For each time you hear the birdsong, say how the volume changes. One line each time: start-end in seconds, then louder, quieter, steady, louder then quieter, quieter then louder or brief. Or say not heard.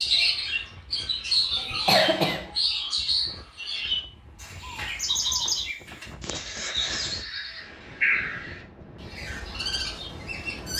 0.0-10.7 quieter.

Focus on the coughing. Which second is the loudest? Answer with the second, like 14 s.
2 s.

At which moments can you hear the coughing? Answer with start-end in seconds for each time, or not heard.
1.6-2.5, 6.2-7.2.